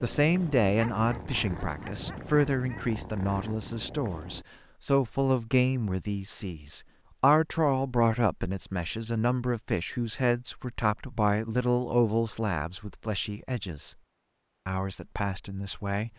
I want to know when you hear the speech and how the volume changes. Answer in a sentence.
The speech can be heard from 0.0 to 13.9 s, at a steady volume; and briefly from 14.7 to 16.1 s.